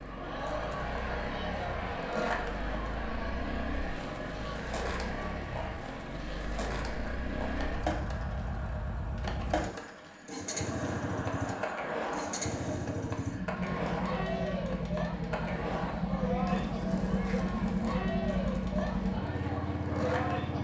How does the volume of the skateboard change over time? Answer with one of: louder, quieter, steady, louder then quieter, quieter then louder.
steady.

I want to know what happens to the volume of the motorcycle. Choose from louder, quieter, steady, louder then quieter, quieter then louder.
louder.